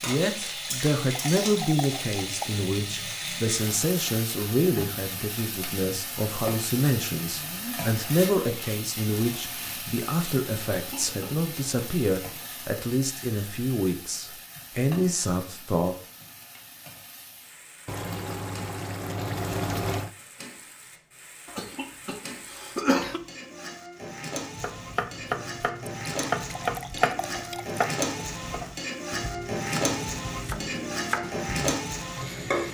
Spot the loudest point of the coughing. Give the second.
23 s.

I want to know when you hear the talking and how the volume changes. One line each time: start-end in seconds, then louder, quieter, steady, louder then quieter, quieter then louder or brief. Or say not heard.
0.0-15.9 steady.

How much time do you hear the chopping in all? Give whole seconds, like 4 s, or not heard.
7 s.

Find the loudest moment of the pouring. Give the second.
20 s.